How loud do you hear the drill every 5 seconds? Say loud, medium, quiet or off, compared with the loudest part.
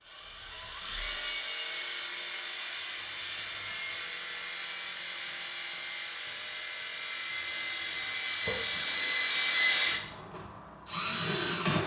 medium, loud, loud.